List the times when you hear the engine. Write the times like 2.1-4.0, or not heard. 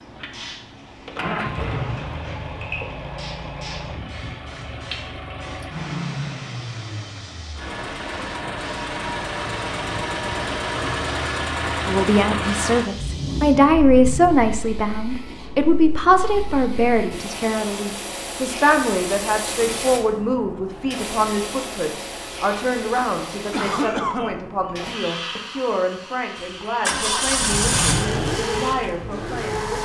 0.0-14.5, 26.4-29.7.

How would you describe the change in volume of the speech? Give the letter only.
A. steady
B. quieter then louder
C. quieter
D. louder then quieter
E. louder
C.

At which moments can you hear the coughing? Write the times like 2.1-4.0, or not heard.
23.5-24.4.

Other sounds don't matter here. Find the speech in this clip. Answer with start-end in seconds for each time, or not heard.
11.8-29.7.